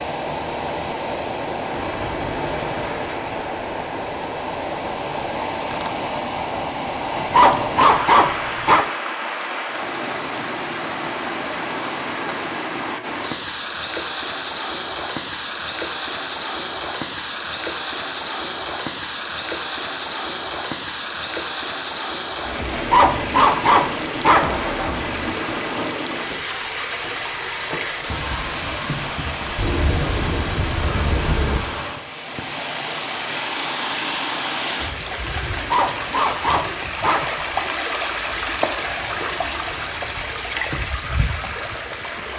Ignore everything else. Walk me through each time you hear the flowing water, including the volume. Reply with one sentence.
The flowing water can be heard from 0.0 to 42.3 s, at a steady volume.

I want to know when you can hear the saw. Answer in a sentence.
You can't hear the saw here.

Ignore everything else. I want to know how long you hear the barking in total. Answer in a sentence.
The barking can be heard for 6 seconds in total.